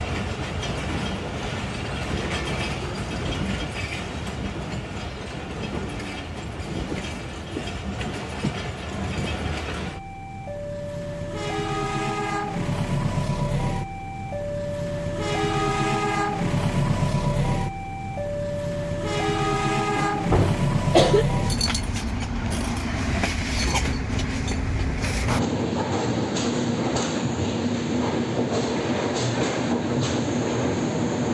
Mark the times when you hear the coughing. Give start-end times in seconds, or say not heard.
19.9-21.2.